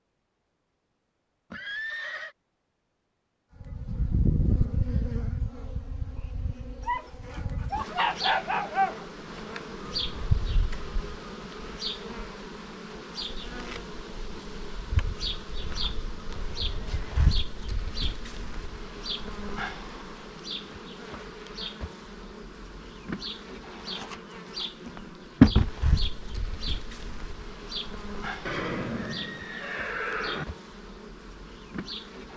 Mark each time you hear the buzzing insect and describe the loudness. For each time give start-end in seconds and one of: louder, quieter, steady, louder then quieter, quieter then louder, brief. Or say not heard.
3.6-32.3 louder then quieter.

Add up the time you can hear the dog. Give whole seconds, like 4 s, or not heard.
2 s.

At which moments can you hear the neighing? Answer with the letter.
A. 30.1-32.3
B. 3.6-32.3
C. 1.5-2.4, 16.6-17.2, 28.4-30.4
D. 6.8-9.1
C.